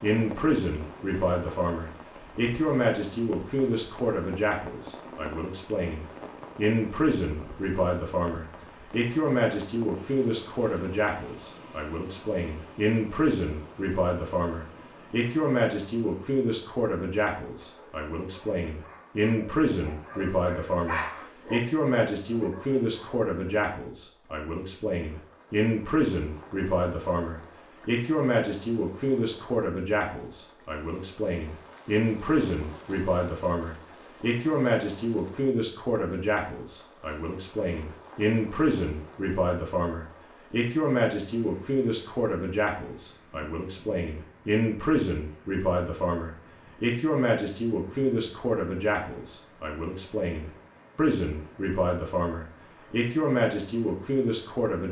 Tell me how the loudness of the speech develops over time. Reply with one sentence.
The volume of the speech stays about the same.